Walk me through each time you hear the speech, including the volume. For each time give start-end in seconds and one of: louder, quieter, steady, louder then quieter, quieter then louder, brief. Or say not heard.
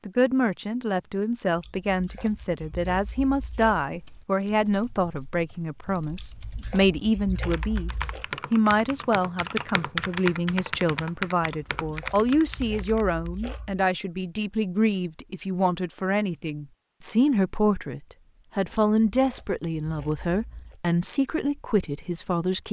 0.1-22.6 steady.